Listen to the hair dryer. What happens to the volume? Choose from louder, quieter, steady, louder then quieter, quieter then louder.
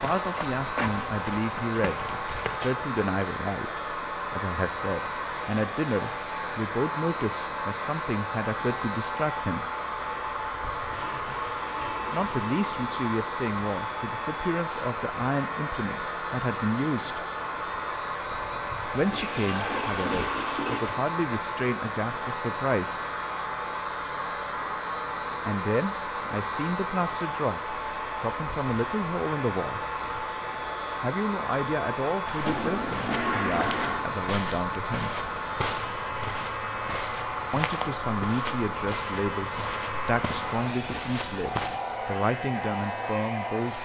steady.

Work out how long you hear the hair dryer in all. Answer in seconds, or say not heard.
44 s.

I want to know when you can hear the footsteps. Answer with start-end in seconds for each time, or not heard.
0.0-2.7, 32.2-41.8.